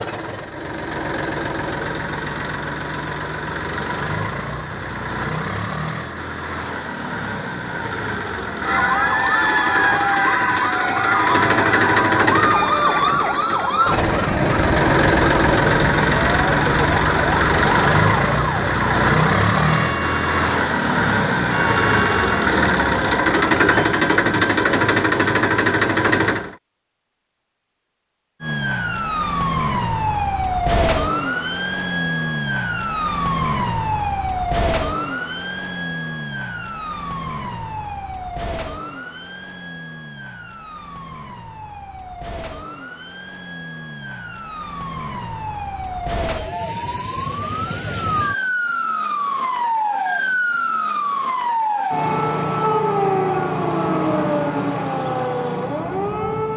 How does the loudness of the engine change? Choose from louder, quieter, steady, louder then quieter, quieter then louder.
louder.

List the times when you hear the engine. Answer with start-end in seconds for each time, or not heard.
0.0-26.6.